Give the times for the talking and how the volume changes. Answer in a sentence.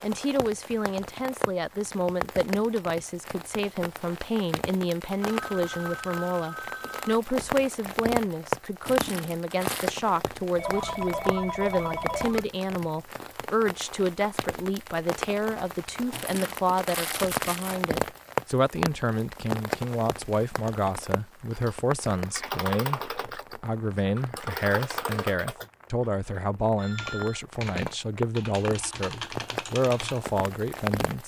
The talking can be heard from 0.0 to 31.2 s, at a steady volume.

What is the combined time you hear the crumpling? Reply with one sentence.
You can hear the crumpling for 3 seconds altogether.